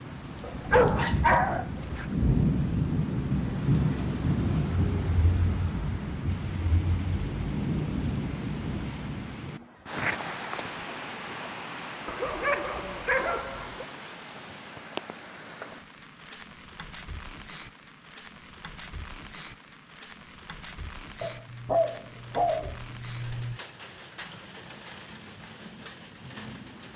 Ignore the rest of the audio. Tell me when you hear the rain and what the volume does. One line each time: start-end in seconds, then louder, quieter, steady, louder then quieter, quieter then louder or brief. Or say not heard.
0.0-26.9 quieter.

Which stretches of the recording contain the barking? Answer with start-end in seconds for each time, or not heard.
0.4-2.1, 12.1-13.8, 21.2-23.6.